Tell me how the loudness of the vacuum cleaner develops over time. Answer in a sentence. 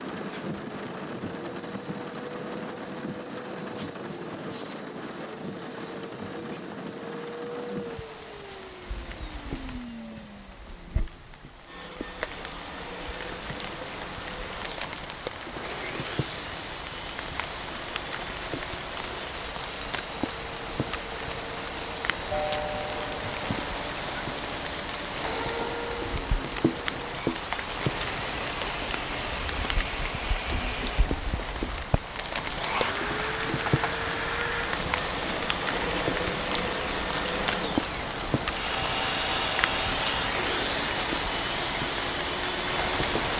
The volume of the vacuum cleaner goes up.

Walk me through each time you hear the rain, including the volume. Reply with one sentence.
You can hear the rain from 0.0 to 43.3 s, getting louder.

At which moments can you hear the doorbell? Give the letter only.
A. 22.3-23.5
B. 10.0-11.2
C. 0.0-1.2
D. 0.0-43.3
A.